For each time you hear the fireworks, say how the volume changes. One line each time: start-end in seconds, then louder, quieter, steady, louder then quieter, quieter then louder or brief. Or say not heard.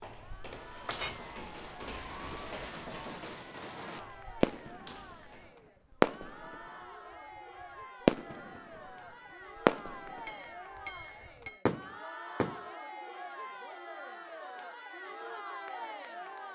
0.6-5.3 louder
6.0-6.7 brief
8.1-8.8 brief
9.7-10.3 brief
11.0-12.6 brief.